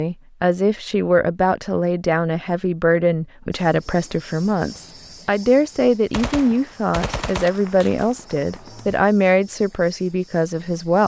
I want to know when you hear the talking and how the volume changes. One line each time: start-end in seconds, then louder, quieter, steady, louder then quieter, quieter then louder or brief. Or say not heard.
0.0-11.0 steady.